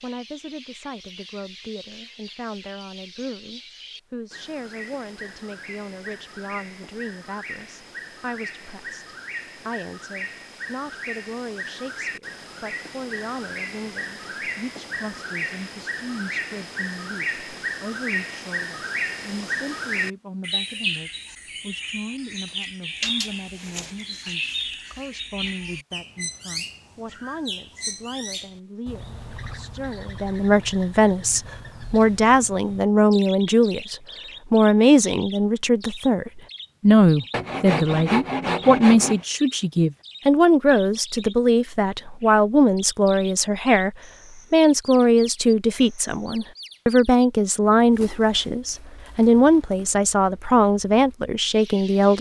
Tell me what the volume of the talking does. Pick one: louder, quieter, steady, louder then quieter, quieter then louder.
louder.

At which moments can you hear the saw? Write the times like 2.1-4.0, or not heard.
37.3-39.2.